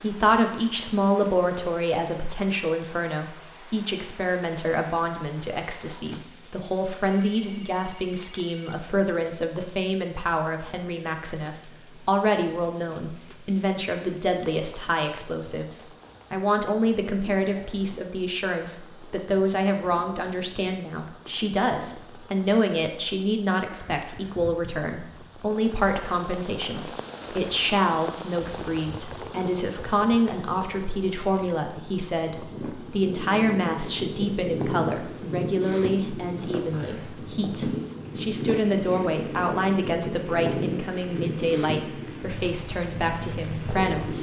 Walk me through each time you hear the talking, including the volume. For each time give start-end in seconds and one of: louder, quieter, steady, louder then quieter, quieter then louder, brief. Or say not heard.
0.0-44.1 steady.